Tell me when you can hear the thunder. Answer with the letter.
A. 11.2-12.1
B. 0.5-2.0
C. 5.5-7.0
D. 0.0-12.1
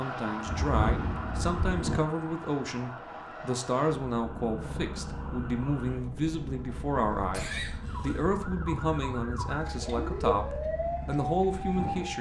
B.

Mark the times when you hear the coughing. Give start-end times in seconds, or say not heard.
7.3-8.2.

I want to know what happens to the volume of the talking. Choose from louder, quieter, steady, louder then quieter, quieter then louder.
steady.